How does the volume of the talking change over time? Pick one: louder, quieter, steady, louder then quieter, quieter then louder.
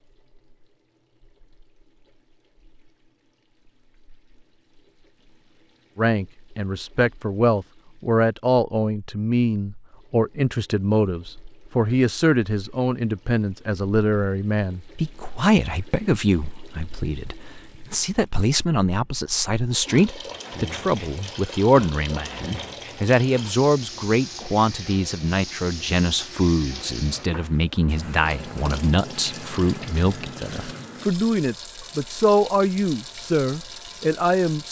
steady.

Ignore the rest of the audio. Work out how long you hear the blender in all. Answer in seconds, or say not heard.
not heard.